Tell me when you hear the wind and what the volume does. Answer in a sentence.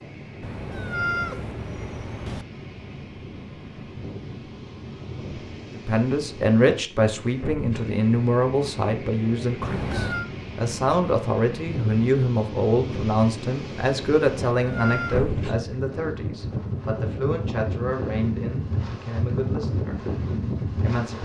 You can hear the wind from 0.0 to 21.2 s, getting louder.